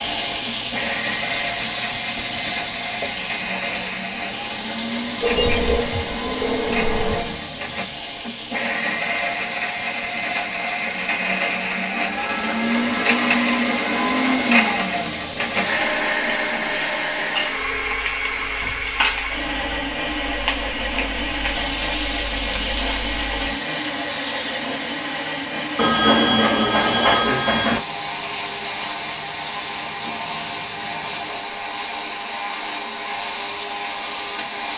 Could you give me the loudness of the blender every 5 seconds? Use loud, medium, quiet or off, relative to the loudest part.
medium, medium, loud, loud, medium, medium, medium.